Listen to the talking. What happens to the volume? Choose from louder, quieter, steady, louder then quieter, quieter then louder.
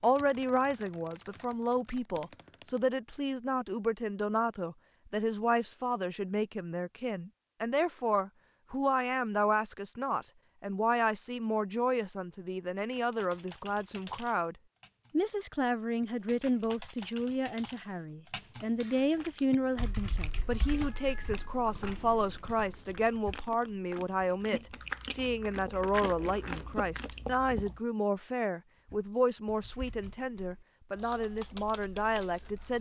steady.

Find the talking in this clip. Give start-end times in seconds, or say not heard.
0.0-32.7.